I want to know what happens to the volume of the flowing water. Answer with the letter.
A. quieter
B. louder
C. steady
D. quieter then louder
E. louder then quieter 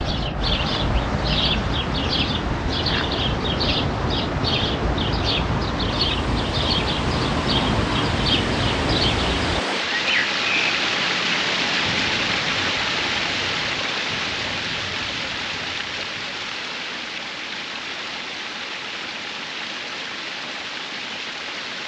E.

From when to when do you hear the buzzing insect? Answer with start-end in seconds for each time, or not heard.
not heard.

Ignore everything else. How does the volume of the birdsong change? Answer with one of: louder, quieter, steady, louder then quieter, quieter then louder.
quieter.